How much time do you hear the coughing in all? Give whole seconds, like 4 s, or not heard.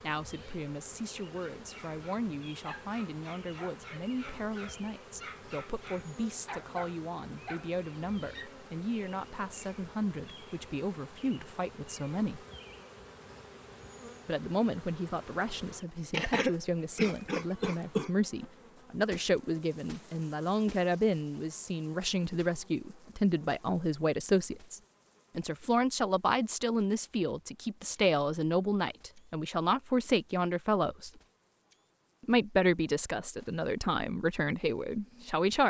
2 s.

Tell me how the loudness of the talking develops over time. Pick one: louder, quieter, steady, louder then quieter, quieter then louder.
louder.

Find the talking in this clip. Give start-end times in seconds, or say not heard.
0.0-12.4, 14.2-31.1, 32.2-35.6.